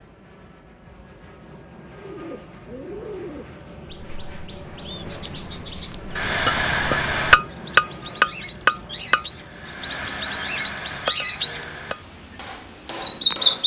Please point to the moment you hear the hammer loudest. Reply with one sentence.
The volume of the hammer peaks at 7 seconds.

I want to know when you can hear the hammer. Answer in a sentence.
You can hear the hammer from 6.2 to 13.6 s.